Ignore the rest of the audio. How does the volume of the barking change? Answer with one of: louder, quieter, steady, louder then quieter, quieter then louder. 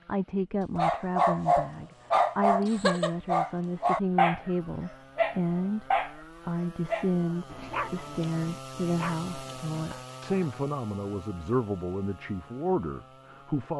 quieter.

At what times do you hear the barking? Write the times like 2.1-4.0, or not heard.
0.8-4.5, 5.2-10.4.